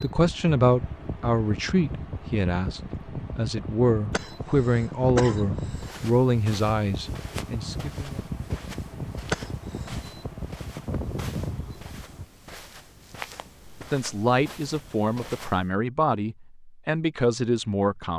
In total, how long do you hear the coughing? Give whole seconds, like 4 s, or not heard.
3 s.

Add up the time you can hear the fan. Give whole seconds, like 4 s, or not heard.
12 s.